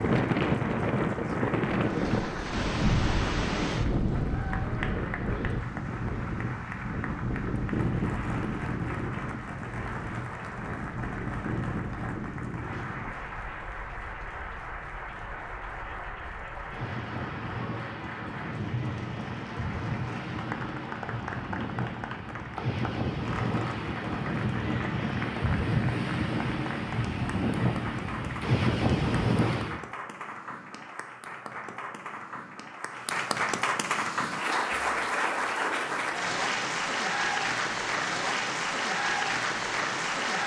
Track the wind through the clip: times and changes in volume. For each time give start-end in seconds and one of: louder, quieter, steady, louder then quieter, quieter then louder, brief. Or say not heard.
0.0-29.8 quieter then louder.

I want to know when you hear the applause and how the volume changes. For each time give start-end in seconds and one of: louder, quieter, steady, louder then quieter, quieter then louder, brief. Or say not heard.
0.0-40.4 louder.